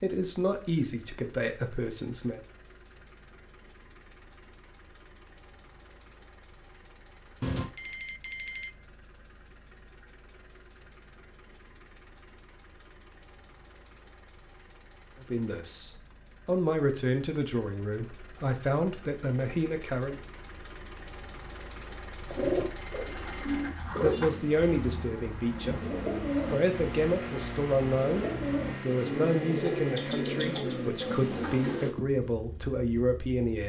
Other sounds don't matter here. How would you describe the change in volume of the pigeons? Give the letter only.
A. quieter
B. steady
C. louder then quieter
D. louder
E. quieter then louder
E.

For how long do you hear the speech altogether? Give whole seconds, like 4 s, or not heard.
16 s.